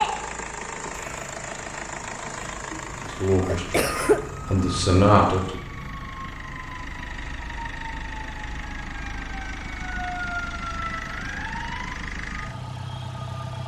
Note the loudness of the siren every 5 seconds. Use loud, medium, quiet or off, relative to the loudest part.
loud, medium, loud.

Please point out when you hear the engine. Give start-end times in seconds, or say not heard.
0.0-13.6.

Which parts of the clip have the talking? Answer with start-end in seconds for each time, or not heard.
3.1-5.6.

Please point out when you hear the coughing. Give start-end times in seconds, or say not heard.
3.0-4.2.